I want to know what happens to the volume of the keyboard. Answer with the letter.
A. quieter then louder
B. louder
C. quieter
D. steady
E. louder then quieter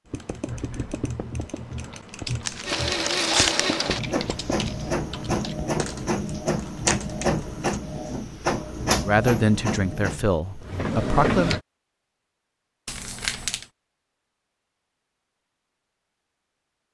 D.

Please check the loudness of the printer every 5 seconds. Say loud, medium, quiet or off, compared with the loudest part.
loud, loud, loud, off.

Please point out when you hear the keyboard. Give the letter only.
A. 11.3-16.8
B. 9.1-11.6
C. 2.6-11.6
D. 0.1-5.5
D.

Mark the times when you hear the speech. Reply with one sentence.
The speech can be heard from 9.1 to 11.6 s.